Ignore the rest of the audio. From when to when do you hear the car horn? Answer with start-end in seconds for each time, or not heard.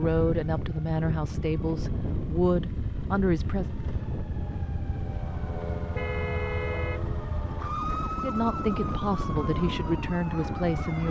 6.0-7.0.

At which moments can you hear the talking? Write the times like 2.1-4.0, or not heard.
0.0-3.8, 8.2-11.0.